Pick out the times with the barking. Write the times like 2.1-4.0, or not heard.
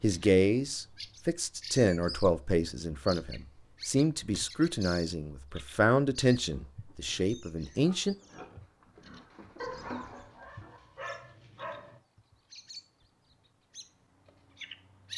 9.6-12.0.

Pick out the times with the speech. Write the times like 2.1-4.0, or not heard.
0.0-8.2.